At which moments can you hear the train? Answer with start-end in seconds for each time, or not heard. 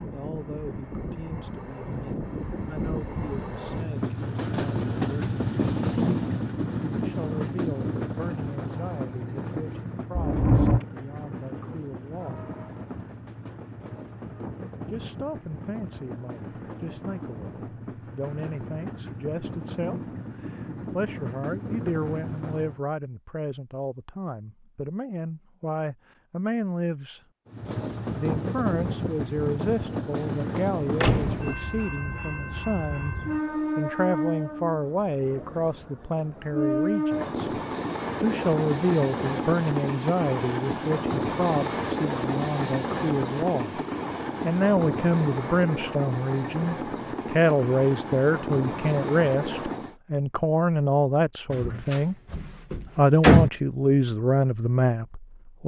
0.0-22.8, 27.4-50.0.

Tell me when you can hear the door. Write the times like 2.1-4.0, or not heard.
10.2-10.8, 31.0-31.4, 51.5-53.5.